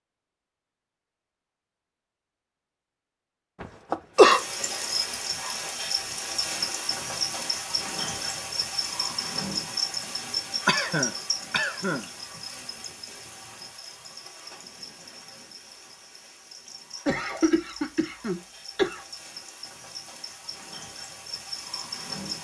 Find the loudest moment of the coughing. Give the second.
4 s.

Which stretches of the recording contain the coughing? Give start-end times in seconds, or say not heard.
3.6-4.4, 10.7-12.1, 17.1-19.1.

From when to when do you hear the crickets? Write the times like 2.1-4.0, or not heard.
4.3-22.4.